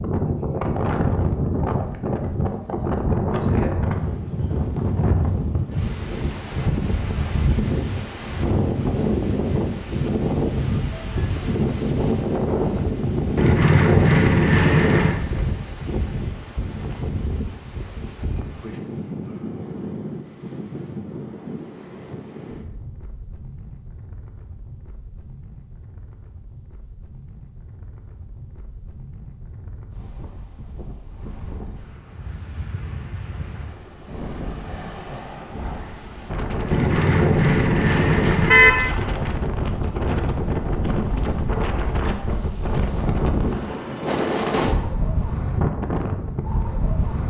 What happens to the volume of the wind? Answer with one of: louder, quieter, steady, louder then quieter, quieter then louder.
quieter then louder.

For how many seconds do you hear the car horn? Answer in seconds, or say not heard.
4 s.